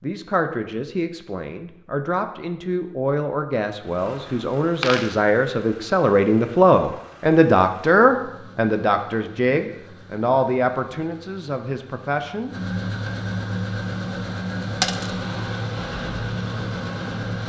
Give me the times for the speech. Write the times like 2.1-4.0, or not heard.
0.0-12.6.